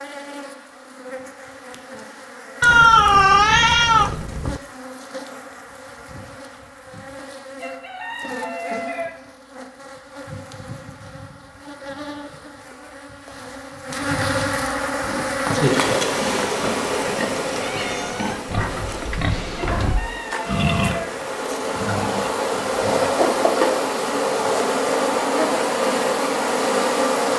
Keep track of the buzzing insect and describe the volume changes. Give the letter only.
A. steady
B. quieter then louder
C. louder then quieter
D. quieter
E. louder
E.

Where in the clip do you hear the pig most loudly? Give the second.
21 s.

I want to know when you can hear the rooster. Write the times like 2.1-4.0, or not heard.
7.6-9.1, 19.8-21.1.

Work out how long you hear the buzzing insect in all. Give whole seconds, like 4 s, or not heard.
27 s.